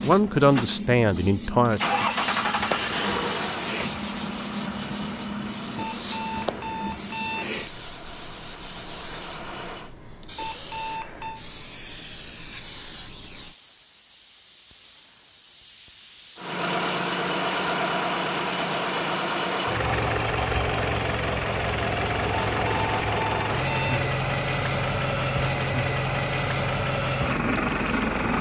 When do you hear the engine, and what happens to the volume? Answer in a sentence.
The engine can be heard from 0.0 to 9.9 s, getting quieter; and from 16.4 to 28.3 s, at a steady volume.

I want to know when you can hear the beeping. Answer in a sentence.
You can hear the beeping from 5.8 to 7.5 s, from 10.3 to 11.4 s and from 22.5 to 24.1 s.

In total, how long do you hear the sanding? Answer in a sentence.
You can hear the sanding for 2 seconds altogether.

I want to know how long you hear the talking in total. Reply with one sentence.
The talking can be heard for 2 seconds in total.